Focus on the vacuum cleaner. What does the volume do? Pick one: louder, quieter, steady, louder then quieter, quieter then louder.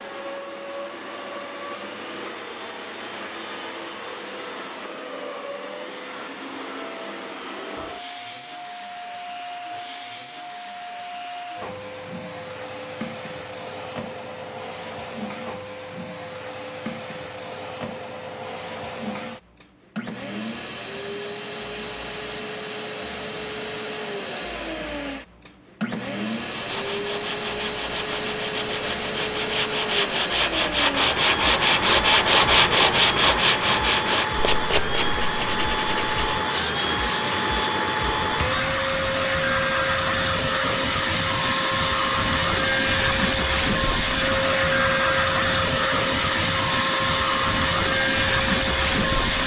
louder.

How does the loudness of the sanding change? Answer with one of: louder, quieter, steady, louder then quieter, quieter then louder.
louder then quieter.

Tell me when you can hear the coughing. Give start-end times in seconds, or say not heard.
not heard.